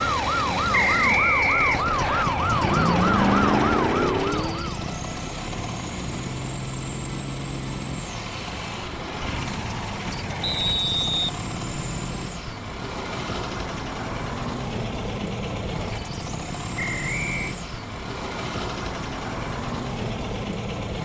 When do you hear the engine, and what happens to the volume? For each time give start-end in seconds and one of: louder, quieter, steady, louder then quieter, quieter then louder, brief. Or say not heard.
0.0-21.0 steady.